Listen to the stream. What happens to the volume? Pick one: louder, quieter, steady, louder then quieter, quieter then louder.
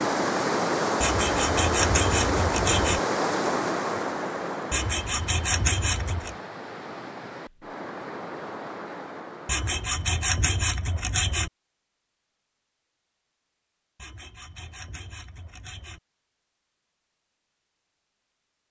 quieter.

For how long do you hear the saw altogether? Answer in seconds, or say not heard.
8 s.